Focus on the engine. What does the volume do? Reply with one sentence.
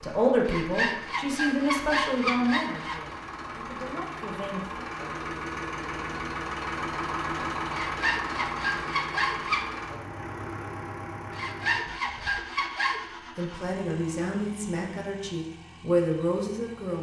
The volume of the engine goes up, then down.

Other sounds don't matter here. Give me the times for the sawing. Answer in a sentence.
You can hear the sawing from 0.5 to 3.1 s, from 7.7 to 9.7 s and from 11.3 to 13.0 s.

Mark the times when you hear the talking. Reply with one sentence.
The talking can be heard from 0.0 to 4.8 s and from 13.3 to 16.9 s.